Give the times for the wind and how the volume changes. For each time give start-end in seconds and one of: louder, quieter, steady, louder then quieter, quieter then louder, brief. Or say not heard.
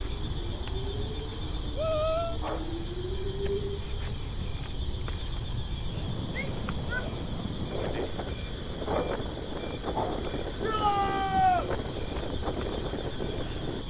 0.0-13.8 louder.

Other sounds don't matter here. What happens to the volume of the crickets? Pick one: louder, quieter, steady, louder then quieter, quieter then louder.
steady.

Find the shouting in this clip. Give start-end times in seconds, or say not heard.
1.8-2.4, 6.3-7.1, 10.6-11.7.